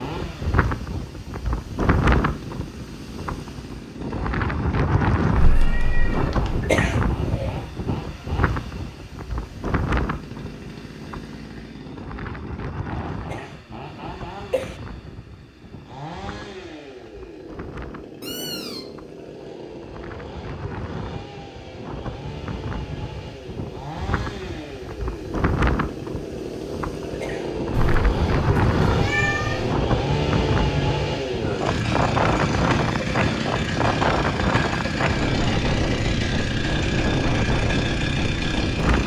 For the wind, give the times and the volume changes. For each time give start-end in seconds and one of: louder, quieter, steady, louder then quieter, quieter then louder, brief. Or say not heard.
0.0-39.0 quieter then louder.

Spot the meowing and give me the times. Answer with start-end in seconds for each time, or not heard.
5.3-6.6, 18.2-18.9, 27.7-29.8.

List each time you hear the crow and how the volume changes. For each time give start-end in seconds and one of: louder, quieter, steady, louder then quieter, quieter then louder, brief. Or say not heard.
not heard.